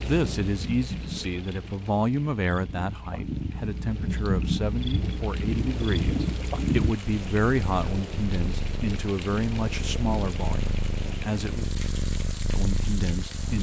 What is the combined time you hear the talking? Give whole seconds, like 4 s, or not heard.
13 s.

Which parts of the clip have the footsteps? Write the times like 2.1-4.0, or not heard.
not heard.